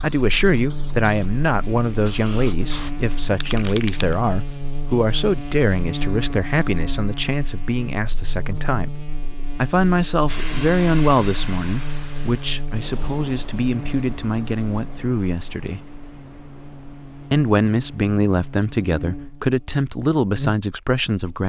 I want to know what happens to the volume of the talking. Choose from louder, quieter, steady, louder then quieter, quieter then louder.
steady.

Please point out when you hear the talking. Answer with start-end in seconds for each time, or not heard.
0.0-15.8, 17.3-21.4.